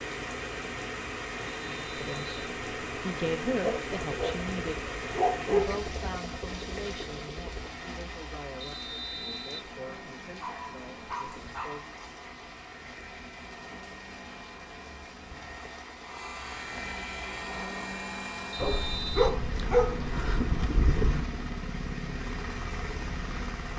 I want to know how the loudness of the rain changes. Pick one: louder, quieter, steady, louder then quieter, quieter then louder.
quieter.